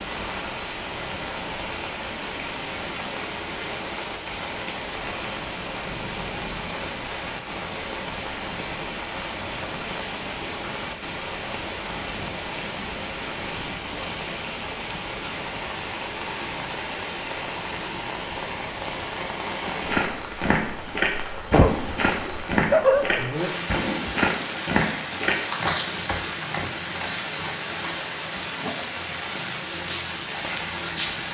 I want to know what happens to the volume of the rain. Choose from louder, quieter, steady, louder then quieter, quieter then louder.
steady.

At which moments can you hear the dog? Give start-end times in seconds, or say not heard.
21.5-23.3.